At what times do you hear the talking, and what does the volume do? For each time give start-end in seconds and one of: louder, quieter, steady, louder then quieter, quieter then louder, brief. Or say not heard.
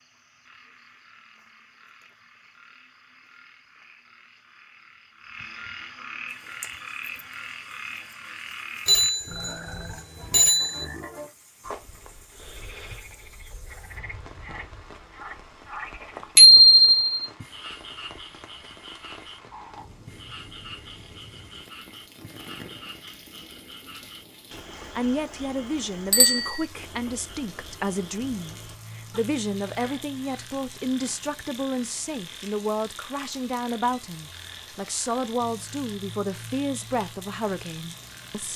24.9-38.5 steady.